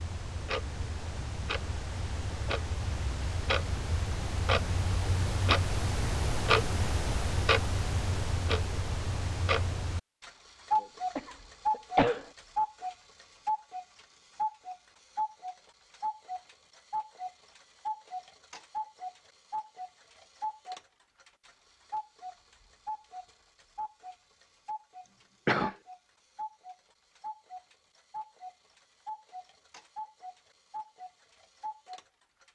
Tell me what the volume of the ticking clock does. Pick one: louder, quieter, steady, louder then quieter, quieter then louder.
quieter.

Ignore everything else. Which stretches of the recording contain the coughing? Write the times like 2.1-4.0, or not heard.
10.8-12.2, 25.1-25.8.